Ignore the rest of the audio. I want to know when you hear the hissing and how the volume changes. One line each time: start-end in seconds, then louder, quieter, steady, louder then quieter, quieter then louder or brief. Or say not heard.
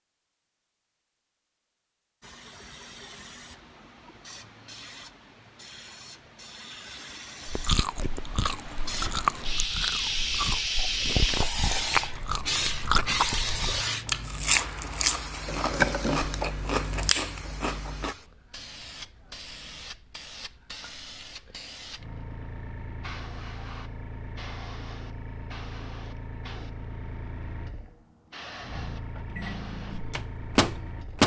2.2-31.2 louder then quieter.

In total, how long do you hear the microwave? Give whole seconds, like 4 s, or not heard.
2 s.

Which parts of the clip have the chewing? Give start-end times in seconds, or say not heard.
7.5-18.1.